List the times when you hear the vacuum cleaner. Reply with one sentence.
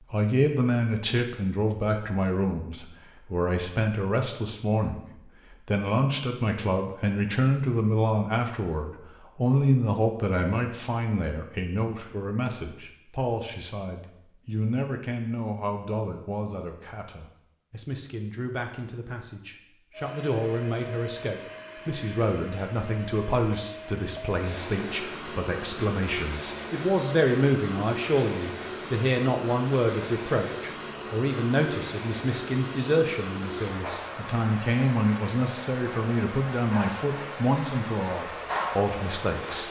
The vacuum cleaner can be heard from 19.9 to 39.6 s.